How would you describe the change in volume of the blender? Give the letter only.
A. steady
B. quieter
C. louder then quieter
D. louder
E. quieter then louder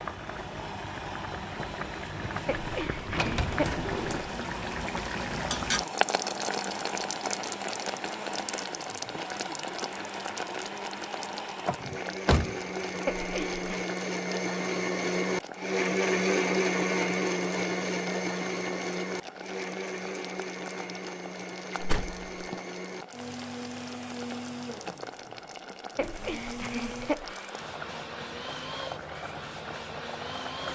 C.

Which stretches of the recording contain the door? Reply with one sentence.
You can hear the door from 3.1 to 4.2 s, from 11.7 to 13.0 s and from 21.8 to 22.2 s.